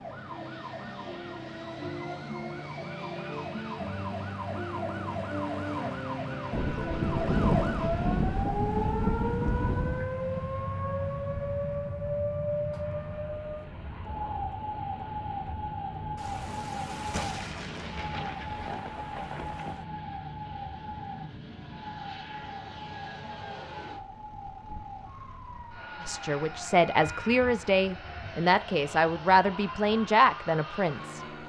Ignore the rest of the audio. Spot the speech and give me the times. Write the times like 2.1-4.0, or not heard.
26.0-31.2.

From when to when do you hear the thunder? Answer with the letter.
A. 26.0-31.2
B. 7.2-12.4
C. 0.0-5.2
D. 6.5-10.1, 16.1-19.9
D.